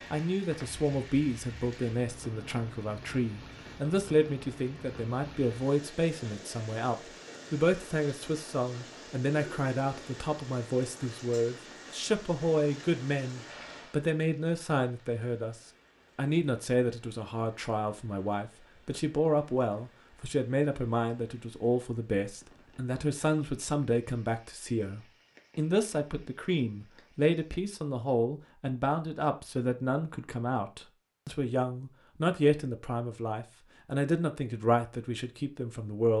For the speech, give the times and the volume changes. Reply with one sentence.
You can hear the speech from 0.1 to 36.1 s, at a steady volume.